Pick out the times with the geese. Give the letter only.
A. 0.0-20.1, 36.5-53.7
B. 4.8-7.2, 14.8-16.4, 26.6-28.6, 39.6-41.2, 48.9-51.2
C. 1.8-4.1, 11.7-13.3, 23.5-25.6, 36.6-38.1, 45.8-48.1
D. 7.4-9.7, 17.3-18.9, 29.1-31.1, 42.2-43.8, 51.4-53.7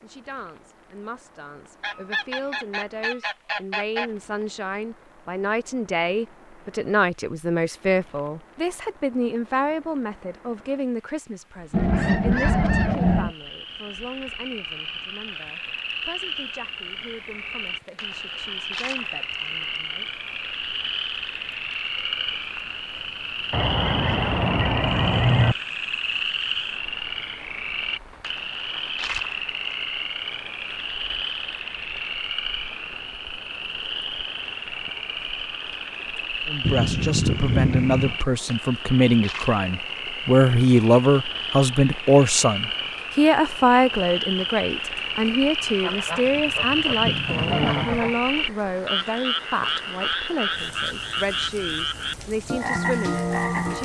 C.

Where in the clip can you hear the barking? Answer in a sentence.
The barking can't be heard in this clip.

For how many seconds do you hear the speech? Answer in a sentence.
The speech can be heard for 37 seconds in total.